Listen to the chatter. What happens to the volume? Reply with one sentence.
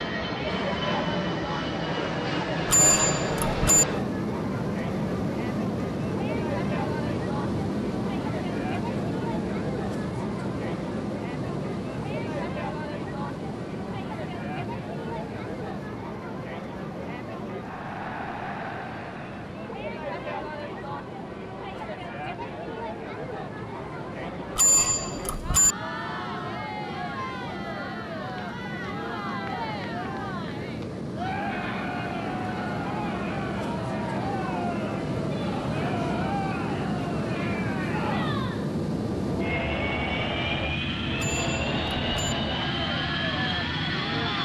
The loudness of the chatter stays about the same.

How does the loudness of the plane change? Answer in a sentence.
The volume of the plane goes down, then up.